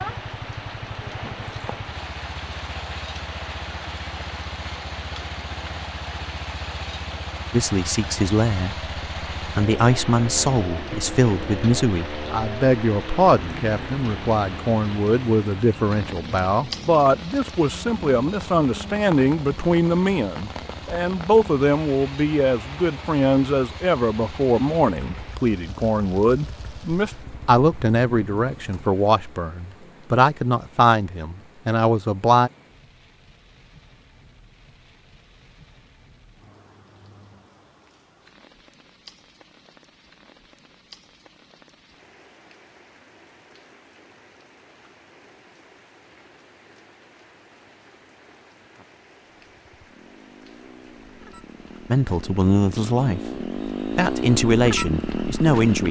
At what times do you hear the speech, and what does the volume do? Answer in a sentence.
The speech can be heard from 7.5 to 32.5 s, at a steady volume; briefly from 51.9 to 53.2 s; and briefly from 54.0 to 55.8 s.